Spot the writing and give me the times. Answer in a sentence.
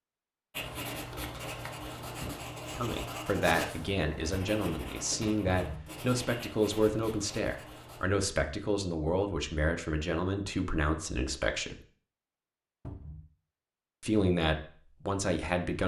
The writing can be heard from 0.5 to 8.1 s.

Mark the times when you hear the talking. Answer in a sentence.
The talking can be heard from 2.8 to 11.8 s and from 14.0 to 15.8 s.